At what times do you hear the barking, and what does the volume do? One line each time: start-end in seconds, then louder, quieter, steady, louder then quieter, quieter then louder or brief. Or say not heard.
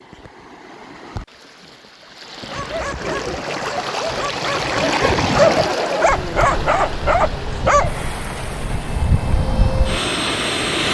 2.5-8.0 louder.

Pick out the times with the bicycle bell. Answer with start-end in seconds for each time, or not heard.
not heard.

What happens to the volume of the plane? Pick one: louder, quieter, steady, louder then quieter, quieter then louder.
louder.